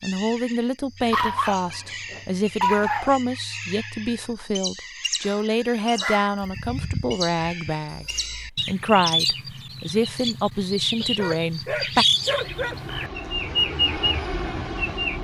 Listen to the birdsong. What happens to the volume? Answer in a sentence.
The loudness of the birdsong goes up.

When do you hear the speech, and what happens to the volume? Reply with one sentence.
The speech can be heard from 0.0 to 12.1 s, at a steady volume.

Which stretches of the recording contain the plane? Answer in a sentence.
You can hear the plane from 12.1 to 15.1 s.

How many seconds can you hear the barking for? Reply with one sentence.
You can hear the barking for 5 seconds altogether.